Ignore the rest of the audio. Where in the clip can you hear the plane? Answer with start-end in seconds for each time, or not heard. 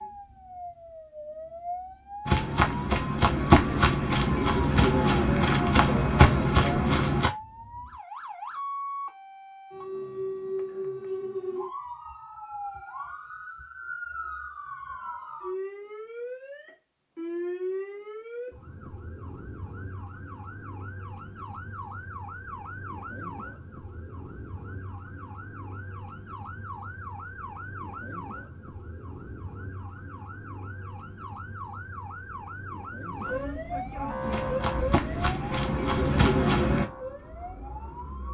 not heard.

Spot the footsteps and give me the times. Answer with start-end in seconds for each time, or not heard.
2.2-7.3, 34.2-36.9.